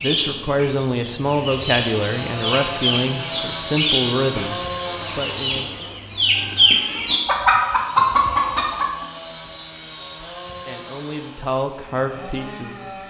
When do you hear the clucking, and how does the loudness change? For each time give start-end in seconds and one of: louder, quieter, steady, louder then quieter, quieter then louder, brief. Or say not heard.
0.0-9.1 louder.